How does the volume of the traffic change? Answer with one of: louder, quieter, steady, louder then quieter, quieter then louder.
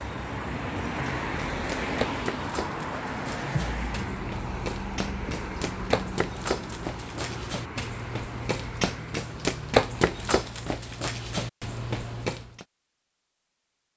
quieter.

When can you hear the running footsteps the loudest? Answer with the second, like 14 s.
10 s.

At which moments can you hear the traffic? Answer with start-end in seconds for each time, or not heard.
0.0-10.4.